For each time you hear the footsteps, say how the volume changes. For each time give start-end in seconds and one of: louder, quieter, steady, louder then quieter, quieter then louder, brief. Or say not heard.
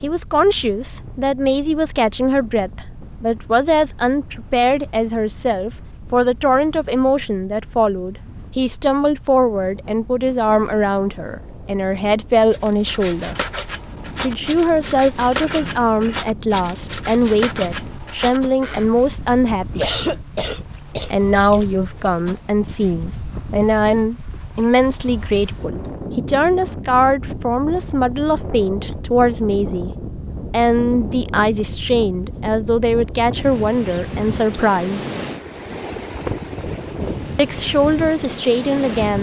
not heard.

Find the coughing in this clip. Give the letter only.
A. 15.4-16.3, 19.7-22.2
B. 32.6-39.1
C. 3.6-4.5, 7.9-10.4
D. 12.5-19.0
A.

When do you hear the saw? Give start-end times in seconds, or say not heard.
12.5-19.0.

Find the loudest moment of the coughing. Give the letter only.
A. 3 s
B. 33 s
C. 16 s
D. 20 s
D.